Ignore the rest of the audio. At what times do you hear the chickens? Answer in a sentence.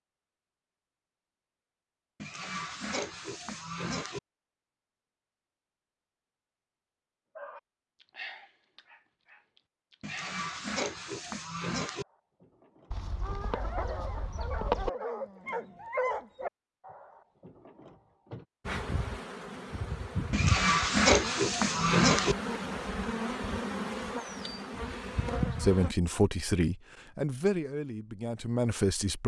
You can hear the chickens from 12.9 to 14.9 s.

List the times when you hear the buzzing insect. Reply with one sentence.
You can hear the buzzing insect from 18.6 to 25.9 s.